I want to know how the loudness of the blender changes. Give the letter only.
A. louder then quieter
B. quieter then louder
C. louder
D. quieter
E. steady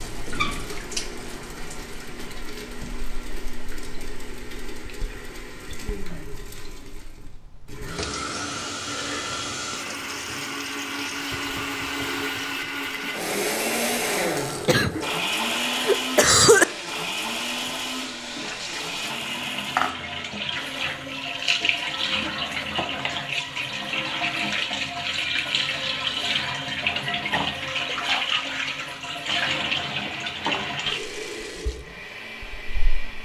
A.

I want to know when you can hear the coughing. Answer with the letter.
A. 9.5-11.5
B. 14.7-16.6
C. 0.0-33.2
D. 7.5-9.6
B.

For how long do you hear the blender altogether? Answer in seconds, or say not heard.
33 s.